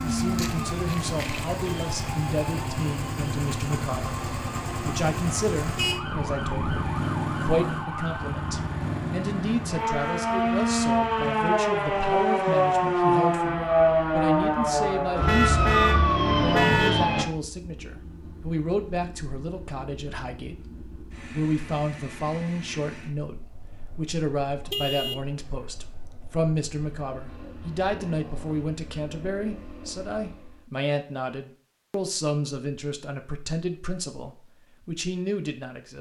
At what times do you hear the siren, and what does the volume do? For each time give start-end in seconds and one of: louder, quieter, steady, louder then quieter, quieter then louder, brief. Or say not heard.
0.0-17.2 louder.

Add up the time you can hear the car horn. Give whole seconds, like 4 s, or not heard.
4 s.